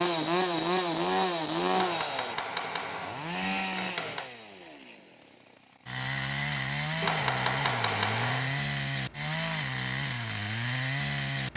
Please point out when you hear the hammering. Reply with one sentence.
You can hear the hammering from 1.8 to 4.3 s and from 7.0 to 8.7 s.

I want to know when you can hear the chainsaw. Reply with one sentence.
The chainsaw can be heard from 0.0 to 11.5 s.